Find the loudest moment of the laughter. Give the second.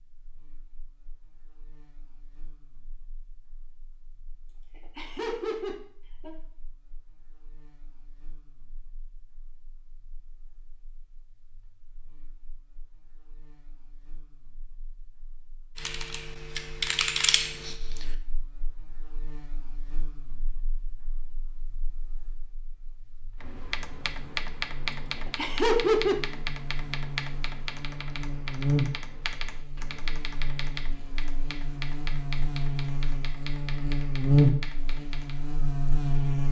26 s.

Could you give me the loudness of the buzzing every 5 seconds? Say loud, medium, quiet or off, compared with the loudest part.
quiet, quiet, quiet, quiet, quiet, medium, loud, loud.